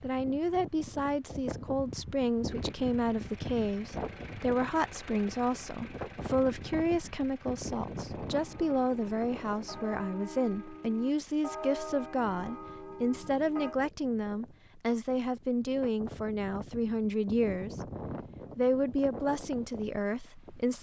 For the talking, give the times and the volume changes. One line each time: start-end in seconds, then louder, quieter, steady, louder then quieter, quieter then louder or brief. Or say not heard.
0.0-17.9 steady
18.6-20.7 brief.